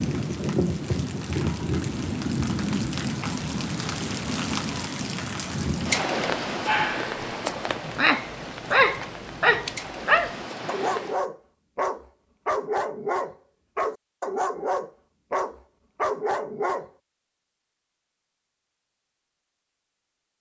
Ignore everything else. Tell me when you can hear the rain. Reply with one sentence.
You can hear the rain from 0.0 to 11.2 s.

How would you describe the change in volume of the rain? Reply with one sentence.
The volume of the rain goes down.